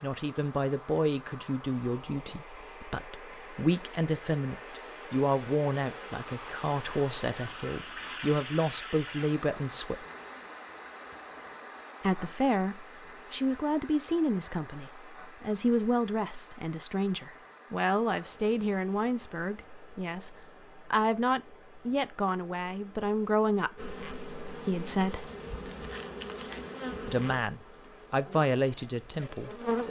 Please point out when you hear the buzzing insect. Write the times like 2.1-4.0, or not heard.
23.8-29.8.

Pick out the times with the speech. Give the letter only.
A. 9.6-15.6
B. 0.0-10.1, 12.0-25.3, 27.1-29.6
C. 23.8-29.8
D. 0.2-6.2
B.